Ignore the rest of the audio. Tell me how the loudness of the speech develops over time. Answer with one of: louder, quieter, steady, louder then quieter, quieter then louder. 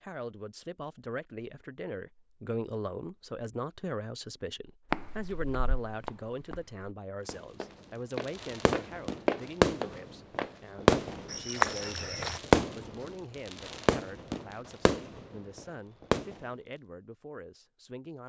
quieter.